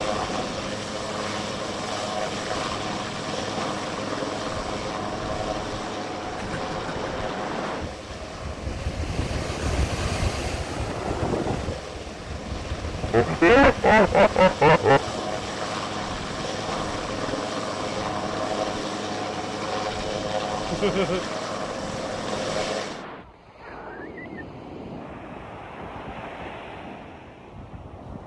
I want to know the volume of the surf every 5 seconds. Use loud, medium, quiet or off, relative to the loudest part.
medium, loud, loud, medium, medium, medium.